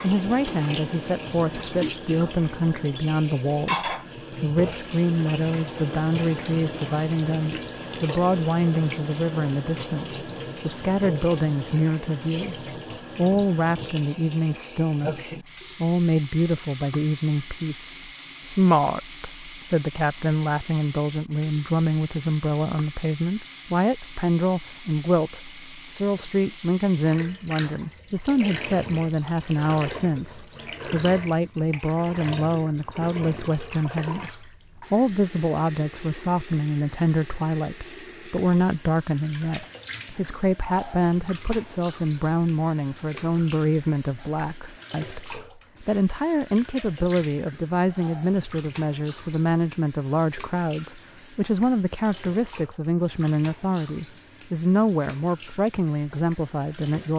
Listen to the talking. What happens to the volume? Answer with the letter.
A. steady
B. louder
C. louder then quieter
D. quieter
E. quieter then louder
A.